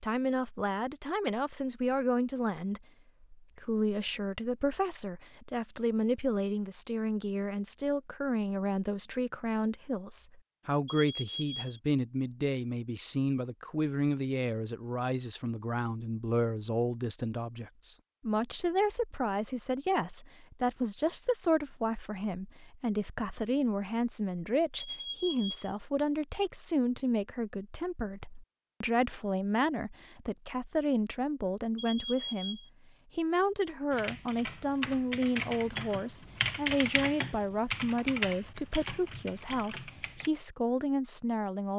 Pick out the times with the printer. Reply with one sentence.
The printer can't be heard in this clip.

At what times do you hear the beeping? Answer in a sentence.
The beeping can be heard from 10.8 to 11.8 s, from 24.8 to 25.7 s and from 31.8 to 32.7 s.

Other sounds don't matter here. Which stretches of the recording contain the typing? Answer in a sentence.
You can hear the typing from 33.9 to 40.3 s.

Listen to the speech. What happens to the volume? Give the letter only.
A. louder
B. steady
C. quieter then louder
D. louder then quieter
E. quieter
B.